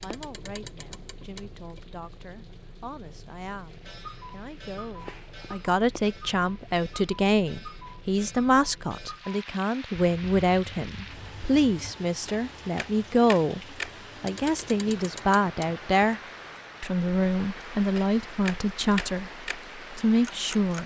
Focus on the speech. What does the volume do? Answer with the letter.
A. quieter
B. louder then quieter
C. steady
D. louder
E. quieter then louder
D.